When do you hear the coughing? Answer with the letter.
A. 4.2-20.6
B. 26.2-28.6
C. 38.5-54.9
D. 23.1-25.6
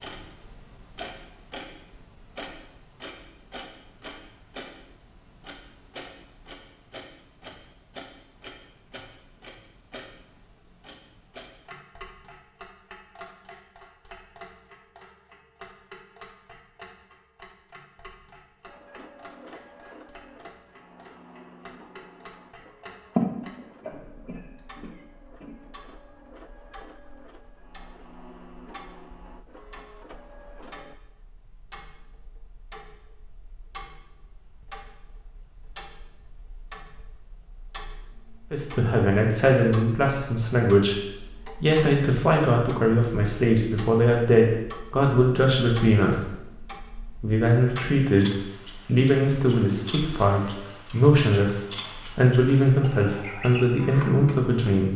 D.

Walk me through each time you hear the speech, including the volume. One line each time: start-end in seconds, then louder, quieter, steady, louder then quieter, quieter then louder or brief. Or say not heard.
38.5-54.9 steady.